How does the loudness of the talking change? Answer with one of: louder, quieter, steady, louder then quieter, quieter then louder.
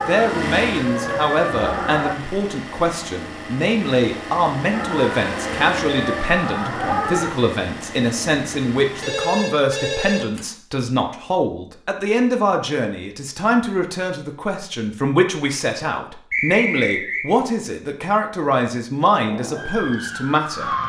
steady.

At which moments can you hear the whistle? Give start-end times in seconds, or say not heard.
16.3-17.2.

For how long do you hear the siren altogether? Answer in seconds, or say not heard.
6 s.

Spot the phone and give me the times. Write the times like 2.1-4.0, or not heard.
9.0-10.4.